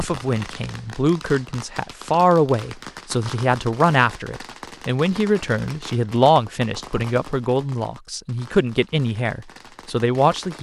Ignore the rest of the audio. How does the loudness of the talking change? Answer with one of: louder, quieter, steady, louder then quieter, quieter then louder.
steady.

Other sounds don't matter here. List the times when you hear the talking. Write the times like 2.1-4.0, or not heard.
0.0-10.5.